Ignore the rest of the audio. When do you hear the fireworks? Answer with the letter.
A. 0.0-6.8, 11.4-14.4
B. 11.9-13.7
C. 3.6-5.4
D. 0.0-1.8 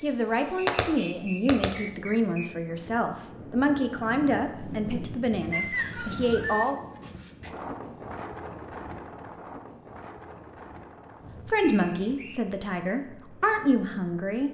D.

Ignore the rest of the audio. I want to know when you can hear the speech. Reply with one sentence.
You can hear the speech from 0.0 to 6.8 s and from 11.4 to 14.4 s.